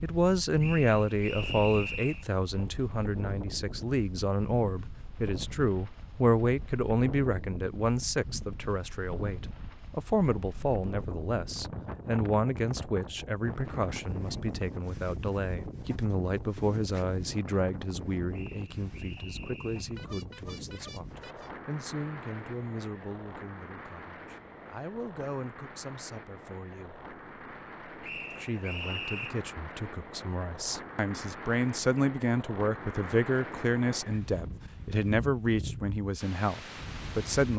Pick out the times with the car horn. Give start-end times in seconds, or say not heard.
19.9-21.5.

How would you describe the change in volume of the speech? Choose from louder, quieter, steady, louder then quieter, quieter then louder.
quieter then louder.